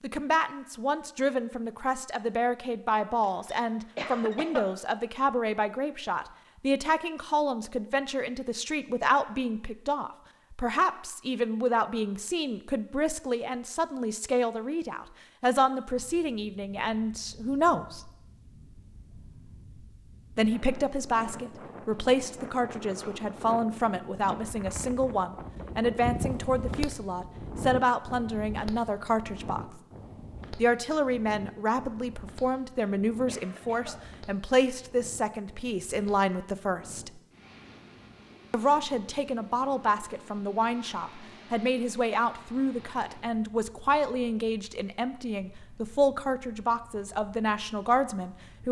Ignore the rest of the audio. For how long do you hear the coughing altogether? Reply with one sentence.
You can hear the coughing for 2 seconds altogether.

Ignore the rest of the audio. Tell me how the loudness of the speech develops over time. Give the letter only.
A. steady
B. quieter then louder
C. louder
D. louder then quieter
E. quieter
A.